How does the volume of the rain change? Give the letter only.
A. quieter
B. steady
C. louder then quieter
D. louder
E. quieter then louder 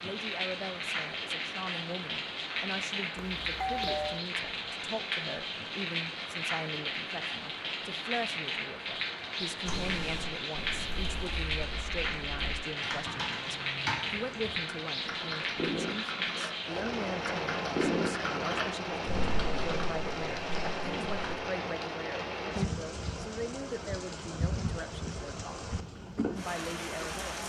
B.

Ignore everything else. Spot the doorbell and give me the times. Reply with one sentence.
The doorbell can be heard from 3.1 to 4.2 s.